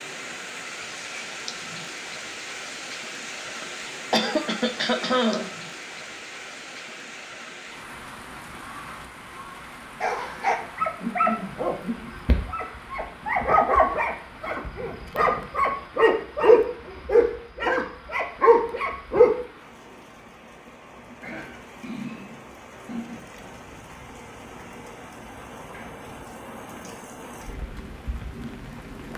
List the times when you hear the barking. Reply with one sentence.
You can hear the barking from 10.0 to 19.3 s.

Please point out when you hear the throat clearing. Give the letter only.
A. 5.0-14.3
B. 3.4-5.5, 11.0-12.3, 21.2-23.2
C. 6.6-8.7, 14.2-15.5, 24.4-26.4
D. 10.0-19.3
B.